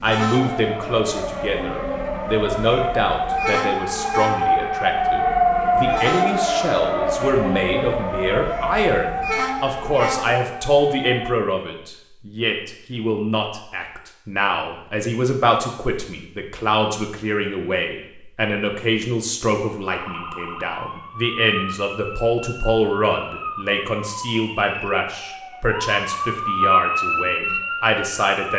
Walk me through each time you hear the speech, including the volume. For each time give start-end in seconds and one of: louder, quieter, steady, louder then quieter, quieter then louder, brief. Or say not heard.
0.0-28.5 steady.